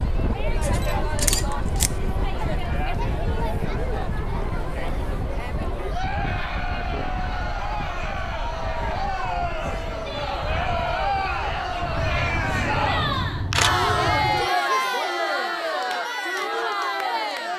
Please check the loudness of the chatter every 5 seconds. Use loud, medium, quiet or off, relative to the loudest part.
medium, medium, loud, loud.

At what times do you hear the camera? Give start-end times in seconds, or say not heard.
0.6-1.9, 11.8-14.5.